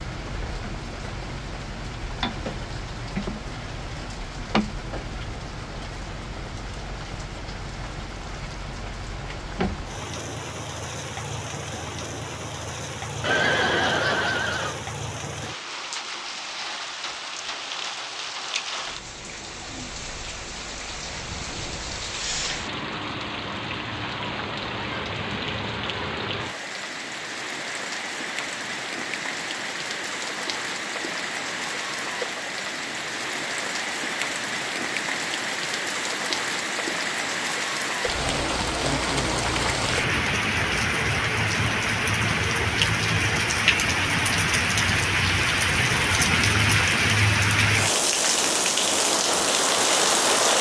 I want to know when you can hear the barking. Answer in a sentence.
The barking can't be heard in this clip.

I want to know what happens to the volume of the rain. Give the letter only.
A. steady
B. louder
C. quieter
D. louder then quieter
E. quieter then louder
B.